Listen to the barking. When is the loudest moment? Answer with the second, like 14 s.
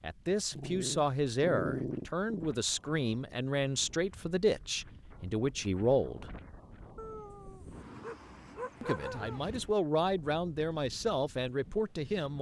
2 s.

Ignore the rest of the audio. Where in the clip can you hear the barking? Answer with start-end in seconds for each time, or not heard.
0.5-2.5, 7.0-9.4.